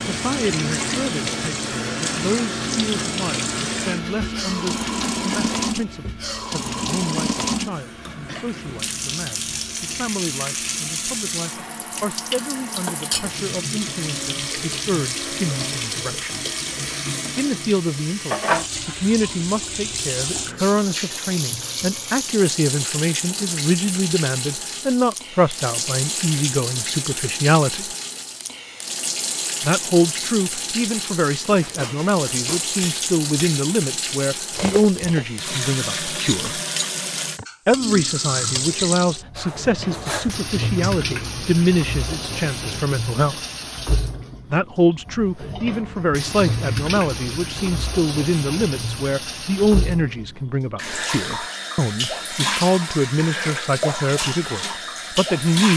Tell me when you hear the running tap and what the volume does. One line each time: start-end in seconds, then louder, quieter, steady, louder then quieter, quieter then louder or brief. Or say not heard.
0.0-55.7 steady.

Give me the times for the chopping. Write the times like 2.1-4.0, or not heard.
not heard.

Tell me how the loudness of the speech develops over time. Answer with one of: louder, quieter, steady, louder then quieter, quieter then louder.
louder.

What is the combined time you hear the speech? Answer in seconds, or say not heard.
51 s.